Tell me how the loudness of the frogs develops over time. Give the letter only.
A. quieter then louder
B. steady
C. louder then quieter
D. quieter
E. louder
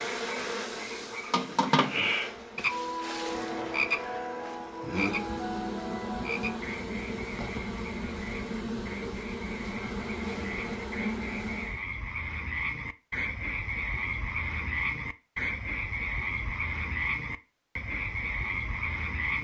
A.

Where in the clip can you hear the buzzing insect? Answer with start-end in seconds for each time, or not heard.
0.0-11.8.